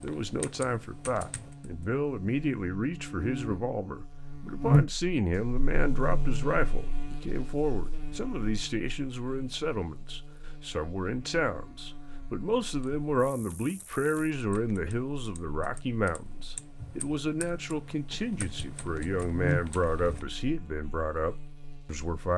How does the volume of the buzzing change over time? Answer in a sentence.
The loudness of the buzzing goes down, then up.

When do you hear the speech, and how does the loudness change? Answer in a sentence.
The speech can be heard from 0.0 to 22.3 s, at a steady volume.